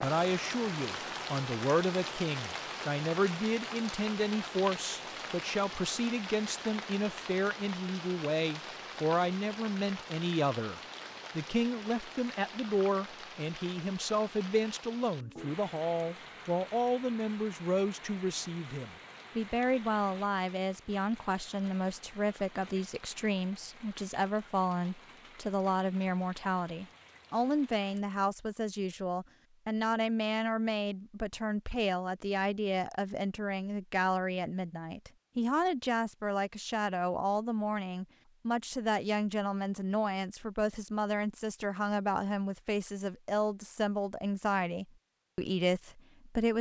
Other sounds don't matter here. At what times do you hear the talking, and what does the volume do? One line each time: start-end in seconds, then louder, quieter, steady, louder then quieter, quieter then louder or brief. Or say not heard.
0.0-46.5 steady.